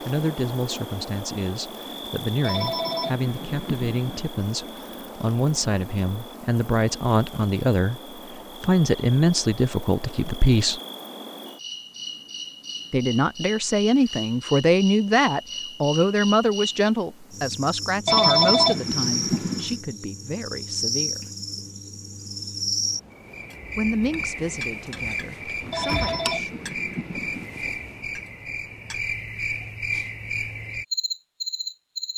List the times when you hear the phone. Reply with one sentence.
You can hear the phone from 2.4 to 4.2 s, from 18.1 to 19.8 s and from 25.7 to 27.5 s.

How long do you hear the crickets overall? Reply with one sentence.
The crickets can be heard for 32 seconds in total.